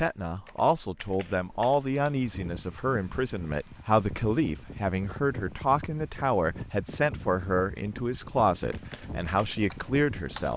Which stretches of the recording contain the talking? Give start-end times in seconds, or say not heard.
0.0-10.5.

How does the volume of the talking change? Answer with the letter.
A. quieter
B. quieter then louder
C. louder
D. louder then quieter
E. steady
E.